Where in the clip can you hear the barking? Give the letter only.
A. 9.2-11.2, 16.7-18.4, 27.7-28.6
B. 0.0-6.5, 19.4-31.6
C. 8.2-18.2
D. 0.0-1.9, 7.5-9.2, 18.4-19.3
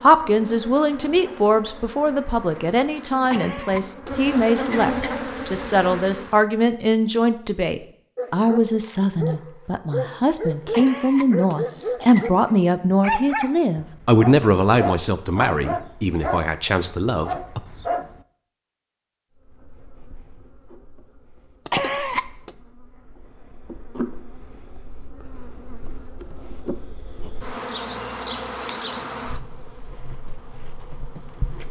C.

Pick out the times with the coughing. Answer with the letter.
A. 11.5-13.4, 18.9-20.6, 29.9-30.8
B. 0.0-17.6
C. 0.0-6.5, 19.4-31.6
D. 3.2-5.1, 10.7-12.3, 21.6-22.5
D.